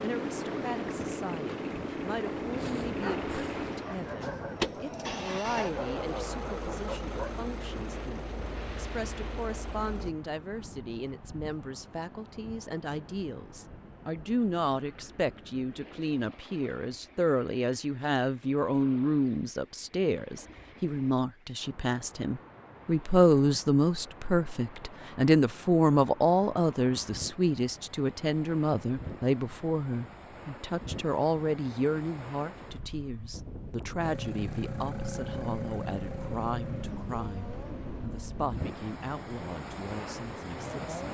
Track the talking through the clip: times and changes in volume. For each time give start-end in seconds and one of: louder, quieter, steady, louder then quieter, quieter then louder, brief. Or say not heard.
0.0-41.0 louder then quieter.